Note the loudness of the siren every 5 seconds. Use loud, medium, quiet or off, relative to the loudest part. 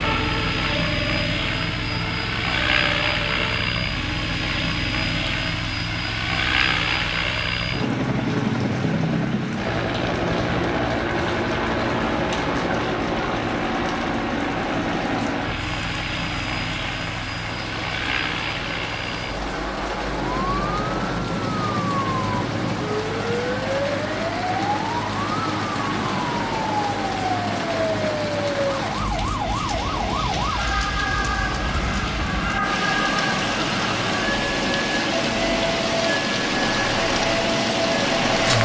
medium, off, off, off, loud, loud, loud, loud.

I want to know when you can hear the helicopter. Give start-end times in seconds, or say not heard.
0.0-38.6.